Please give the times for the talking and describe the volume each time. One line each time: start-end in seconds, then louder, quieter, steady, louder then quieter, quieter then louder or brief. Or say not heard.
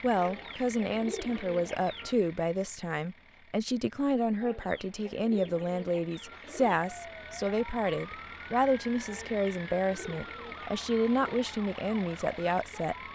0.0-12.9 steady.